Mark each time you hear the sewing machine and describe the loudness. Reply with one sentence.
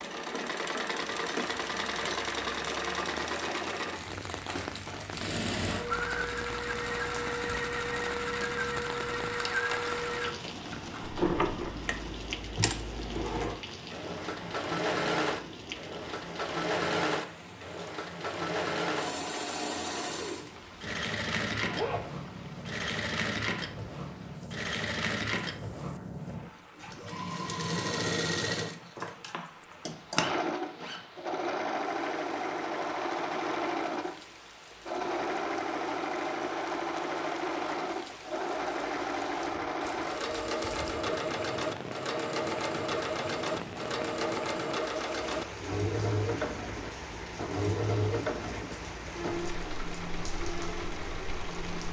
You can hear the sewing machine from 0.0 to 51.8 s, at a steady volume.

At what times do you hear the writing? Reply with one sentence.
The writing can't be heard in this clip.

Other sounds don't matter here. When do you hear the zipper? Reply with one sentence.
The zipper can be heard from 21.6 to 22.1 s and from 30.1 to 31.0 s.